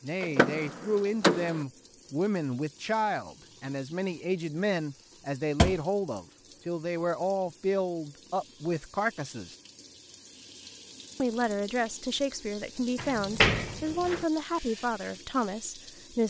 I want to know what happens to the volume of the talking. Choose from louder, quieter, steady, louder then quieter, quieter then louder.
steady.